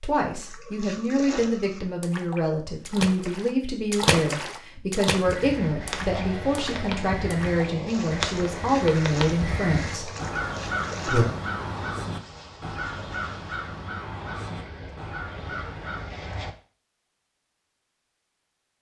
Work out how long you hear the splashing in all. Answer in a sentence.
You can hear the splashing for 11 seconds altogether.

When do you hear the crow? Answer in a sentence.
You can hear the crow from 5.2 to 16.1 s.